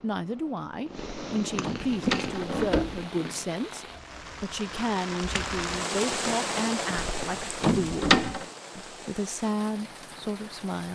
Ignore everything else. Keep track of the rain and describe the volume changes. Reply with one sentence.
The loudness of the rain goes up, then down.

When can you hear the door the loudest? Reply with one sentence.
The volume of the door peaks at 8 seconds.